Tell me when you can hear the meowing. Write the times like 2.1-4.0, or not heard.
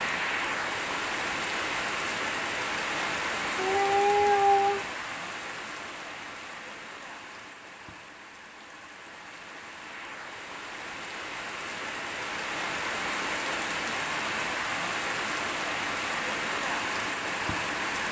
3.5-4.8.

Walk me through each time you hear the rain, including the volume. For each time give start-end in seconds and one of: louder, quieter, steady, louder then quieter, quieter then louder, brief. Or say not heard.
0.0-18.0 quieter then louder.